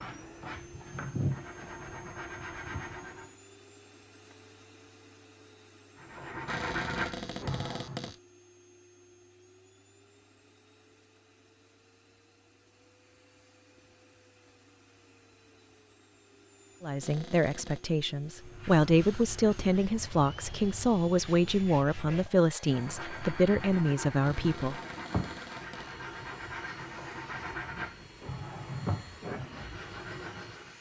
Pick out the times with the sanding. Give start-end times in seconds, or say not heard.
0.0-3.4, 6.0-8.1, 18.4-30.7.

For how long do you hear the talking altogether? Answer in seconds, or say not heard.
8 s.